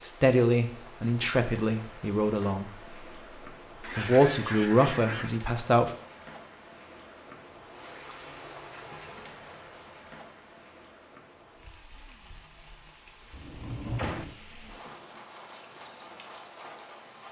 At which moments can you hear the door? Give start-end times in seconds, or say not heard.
13.3-14.3.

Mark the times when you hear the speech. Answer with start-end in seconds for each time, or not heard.
0.0-2.7, 4.0-5.9.